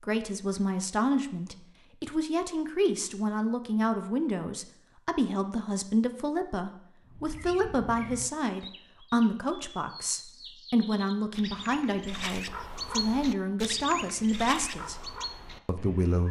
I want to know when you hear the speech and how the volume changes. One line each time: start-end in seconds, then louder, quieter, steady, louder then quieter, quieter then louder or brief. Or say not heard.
0.0-16.2 steady.